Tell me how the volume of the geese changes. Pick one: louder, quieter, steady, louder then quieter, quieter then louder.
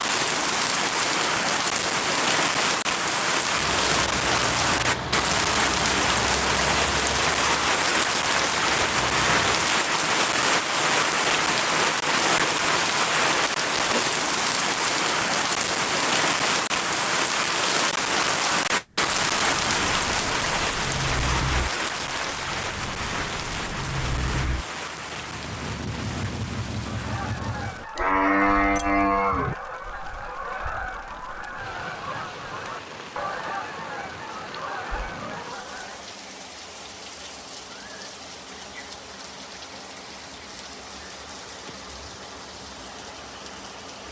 steady.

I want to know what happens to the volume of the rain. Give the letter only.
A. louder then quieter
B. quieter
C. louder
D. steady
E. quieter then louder
B.